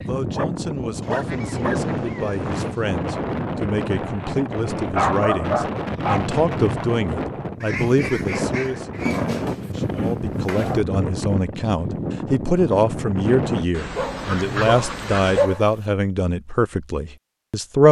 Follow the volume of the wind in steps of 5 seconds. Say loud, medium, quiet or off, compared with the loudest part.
loud, loud, loud, off.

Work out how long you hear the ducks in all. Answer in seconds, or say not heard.
5 s.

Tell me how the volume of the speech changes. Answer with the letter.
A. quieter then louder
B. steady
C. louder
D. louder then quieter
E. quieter
C.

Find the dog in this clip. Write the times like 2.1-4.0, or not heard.
0.3-1.9, 4.9-6.3, 9.1-10.8, 13.9-15.7.